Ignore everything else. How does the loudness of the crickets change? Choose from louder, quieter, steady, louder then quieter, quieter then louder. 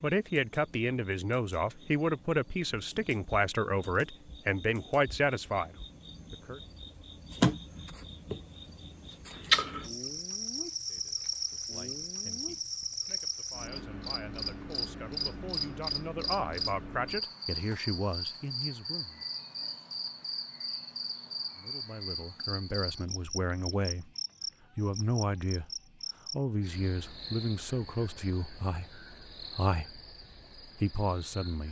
louder then quieter.